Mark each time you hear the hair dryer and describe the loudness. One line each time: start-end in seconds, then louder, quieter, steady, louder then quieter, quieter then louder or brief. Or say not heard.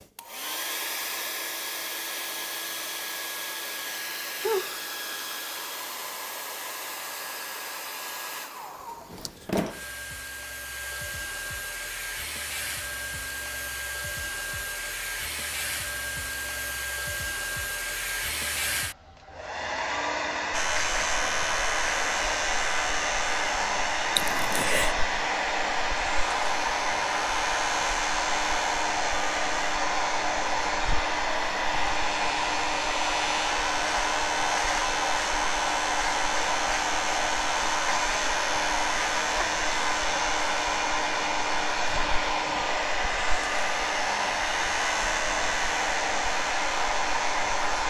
0.0-47.8 louder.